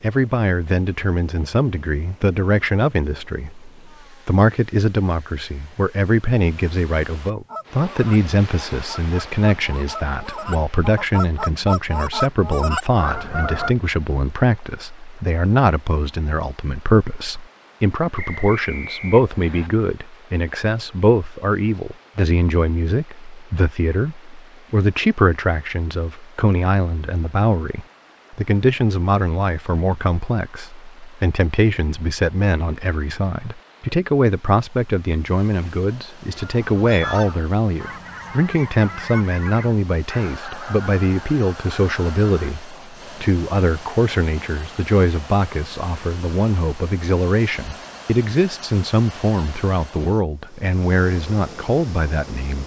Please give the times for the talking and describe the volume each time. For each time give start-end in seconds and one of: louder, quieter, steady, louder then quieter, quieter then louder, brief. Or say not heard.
0.0-52.6 steady.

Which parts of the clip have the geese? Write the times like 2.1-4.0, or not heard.
7.5-13.7, 36.3-42.5.